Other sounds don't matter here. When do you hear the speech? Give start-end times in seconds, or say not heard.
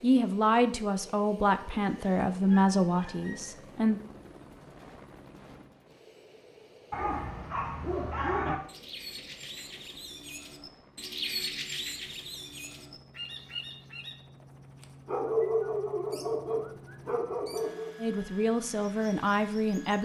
0.0-4.0, 17.9-20.0.